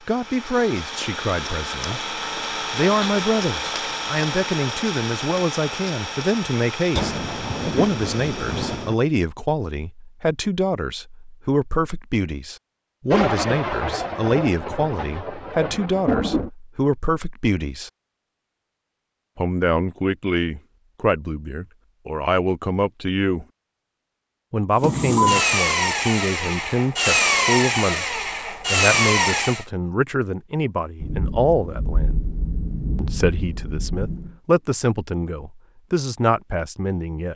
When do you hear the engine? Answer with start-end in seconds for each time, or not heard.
0.0-9.0, 24.8-29.6.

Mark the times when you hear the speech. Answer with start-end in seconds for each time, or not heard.
0.1-2.0, 2.7-17.9, 19.4-23.4, 24.5-32.1, 33.0-37.3.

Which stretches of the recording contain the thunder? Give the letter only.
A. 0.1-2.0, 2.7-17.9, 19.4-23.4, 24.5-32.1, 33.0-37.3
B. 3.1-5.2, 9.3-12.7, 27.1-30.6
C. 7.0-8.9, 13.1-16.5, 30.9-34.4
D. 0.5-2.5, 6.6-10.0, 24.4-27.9
C.